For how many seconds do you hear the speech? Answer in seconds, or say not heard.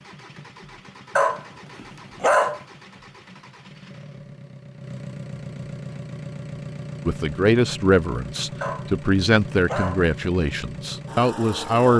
5 s.